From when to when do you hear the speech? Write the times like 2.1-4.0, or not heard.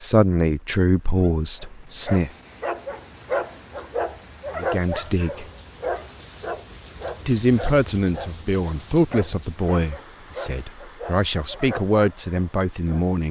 0.0-2.3, 4.5-5.5, 7.2-13.2.